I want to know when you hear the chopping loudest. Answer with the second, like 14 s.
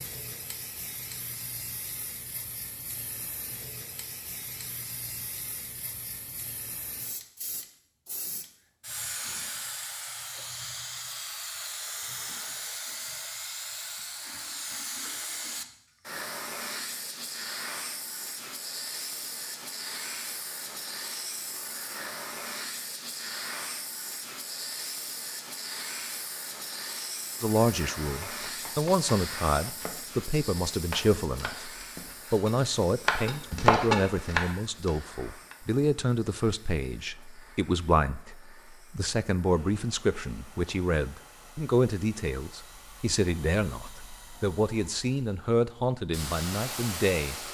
34 s.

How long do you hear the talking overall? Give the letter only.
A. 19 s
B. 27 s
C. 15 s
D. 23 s
A.